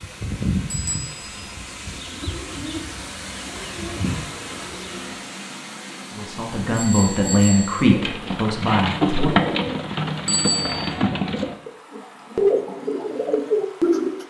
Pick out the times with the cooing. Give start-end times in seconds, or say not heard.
0.0-5.2, 7.7-14.2.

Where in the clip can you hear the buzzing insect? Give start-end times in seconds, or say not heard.
not heard.